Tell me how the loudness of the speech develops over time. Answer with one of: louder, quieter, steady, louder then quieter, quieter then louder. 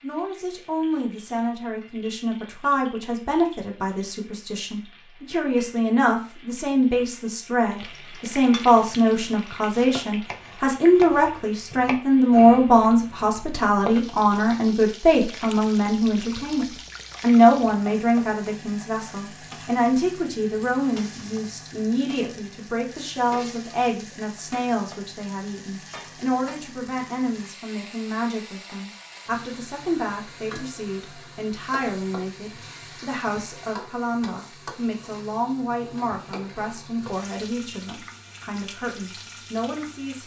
louder then quieter.